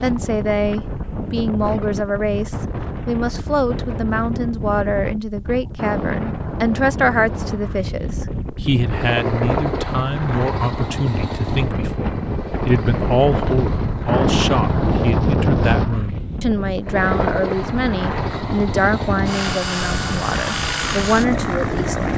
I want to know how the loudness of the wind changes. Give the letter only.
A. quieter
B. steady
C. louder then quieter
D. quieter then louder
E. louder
C.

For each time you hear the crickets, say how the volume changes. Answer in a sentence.
The crickets can't be heard in this clip.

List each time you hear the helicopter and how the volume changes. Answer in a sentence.
You can hear the helicopter from 8.8 to 15.1 s, getting quieter; and from 16.9 to 22.1 s, at a steady volume.